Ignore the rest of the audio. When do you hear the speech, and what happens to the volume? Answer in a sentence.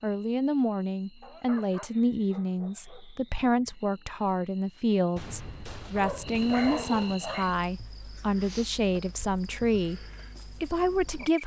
The speech can be heard from 0.0 to 11.4 s, at a steady volume.